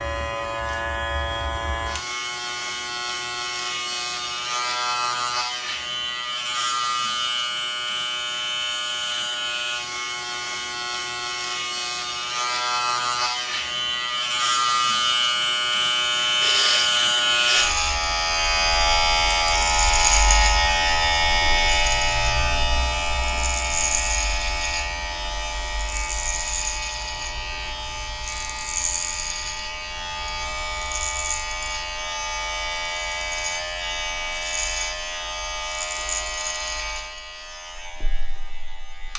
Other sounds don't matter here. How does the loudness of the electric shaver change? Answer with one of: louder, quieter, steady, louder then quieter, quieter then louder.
louder then quieter.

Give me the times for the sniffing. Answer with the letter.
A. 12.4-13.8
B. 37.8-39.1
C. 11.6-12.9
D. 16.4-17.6
D.